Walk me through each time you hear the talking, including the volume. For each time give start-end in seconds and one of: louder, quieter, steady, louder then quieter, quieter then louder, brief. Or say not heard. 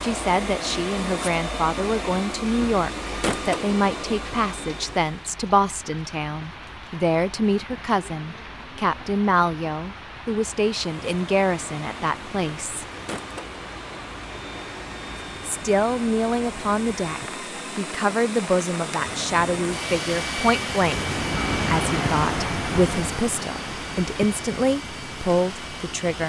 0.0-12.8 steady
15.4-26.2 steady.